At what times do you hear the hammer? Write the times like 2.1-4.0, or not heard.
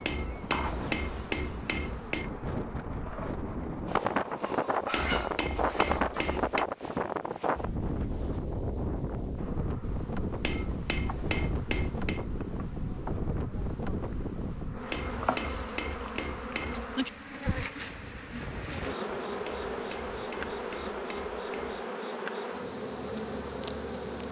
0.0-2.3, 4.9-6.7, 10.4-12.2, 14.9-16.9, 19.4-21.8.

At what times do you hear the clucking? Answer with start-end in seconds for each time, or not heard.
3.9-6.4.